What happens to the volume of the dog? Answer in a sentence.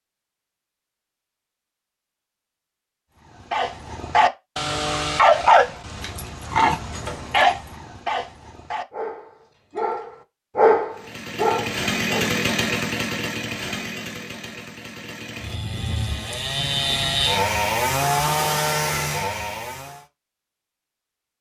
The loudness of the dog goes down, then up.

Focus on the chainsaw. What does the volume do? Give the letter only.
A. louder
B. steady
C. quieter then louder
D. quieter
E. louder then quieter
C.